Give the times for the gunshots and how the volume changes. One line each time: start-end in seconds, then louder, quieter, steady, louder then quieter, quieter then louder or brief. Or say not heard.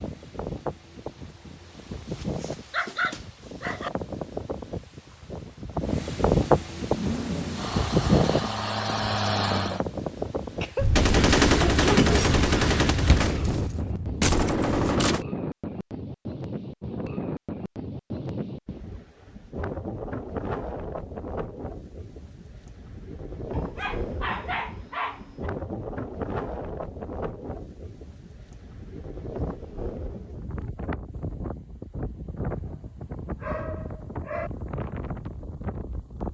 10.8-15.2 quieter then louder.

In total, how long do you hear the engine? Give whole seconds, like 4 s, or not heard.
3 s.